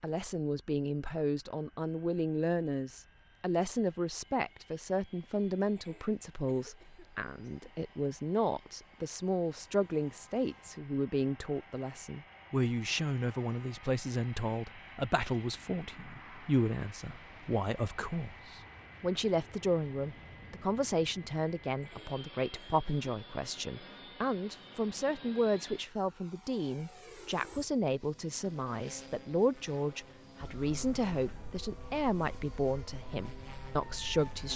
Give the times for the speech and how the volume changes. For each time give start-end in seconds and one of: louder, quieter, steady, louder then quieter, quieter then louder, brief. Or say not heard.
0.0-34.5 steady.